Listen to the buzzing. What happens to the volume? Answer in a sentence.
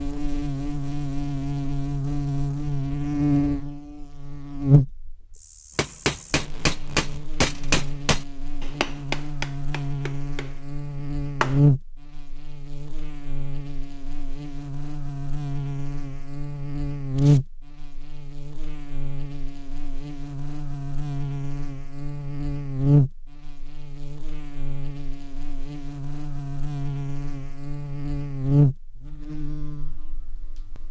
The loudness of the buzzing stays about the same.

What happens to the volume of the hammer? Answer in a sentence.
The loudness of the hammer goes down.